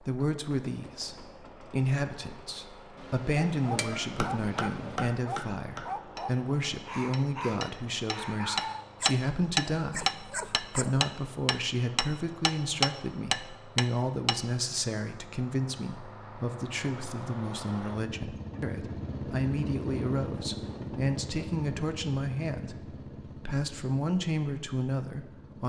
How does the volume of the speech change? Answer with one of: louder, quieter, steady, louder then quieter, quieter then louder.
steady.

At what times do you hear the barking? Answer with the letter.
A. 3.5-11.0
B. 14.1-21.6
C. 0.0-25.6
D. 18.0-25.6
A.